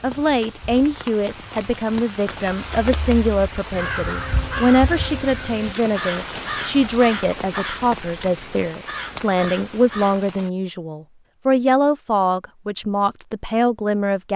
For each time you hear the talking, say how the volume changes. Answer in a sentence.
You can hear the talking from 0.0 to 14.3 s, at a steady volume.